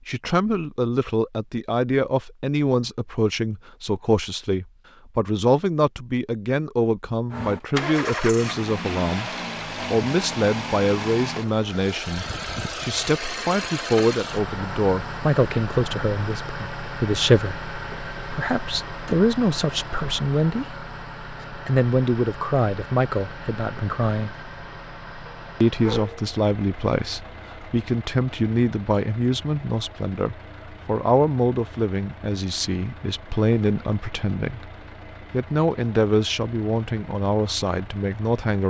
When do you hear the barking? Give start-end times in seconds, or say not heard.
25.2-26.2.